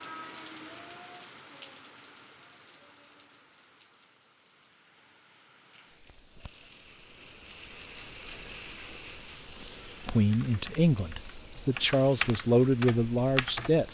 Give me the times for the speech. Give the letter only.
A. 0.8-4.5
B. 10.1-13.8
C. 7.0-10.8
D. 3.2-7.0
B.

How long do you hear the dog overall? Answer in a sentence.
You can't hear the dog here.